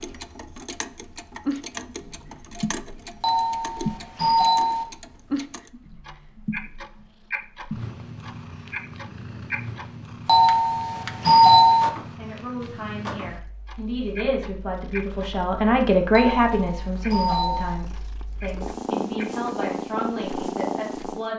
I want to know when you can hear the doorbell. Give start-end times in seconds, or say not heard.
3.2-4.8, 10.2-11.9, 16.1-17.8.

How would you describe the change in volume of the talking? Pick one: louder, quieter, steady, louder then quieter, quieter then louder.
louder then quieter.